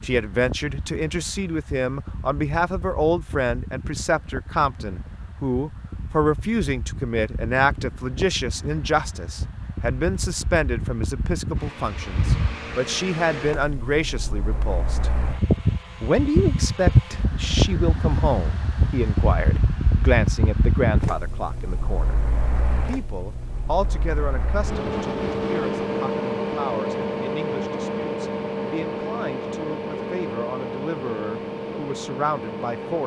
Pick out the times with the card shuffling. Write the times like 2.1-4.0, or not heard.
not heard.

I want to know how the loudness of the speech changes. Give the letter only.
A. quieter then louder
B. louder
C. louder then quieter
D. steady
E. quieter
E.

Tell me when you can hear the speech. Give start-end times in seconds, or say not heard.
0.0-15.1, 16.0-22.2, 22.9-33.0.